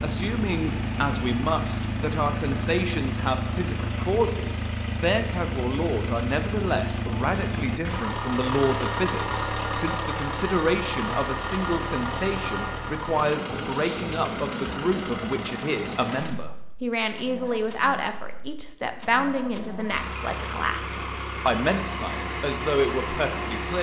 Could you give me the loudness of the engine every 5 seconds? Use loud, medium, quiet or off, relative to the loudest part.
loud, loud, loud, medium, loud.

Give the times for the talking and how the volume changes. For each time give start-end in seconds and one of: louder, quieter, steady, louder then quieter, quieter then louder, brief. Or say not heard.
0.0-23.7 steady.